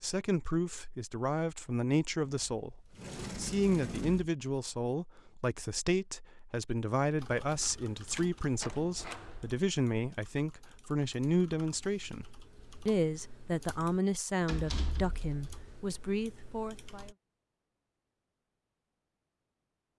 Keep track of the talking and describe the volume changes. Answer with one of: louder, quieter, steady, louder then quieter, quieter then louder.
steady.